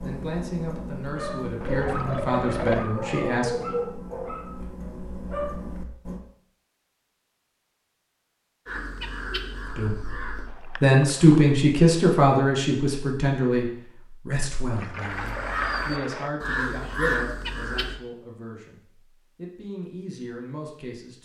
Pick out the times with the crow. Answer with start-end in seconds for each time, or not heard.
8.7-10.5, 15.1-18.0.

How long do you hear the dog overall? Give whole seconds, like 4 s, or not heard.
6 s.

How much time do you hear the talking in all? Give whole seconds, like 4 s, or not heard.
15 s.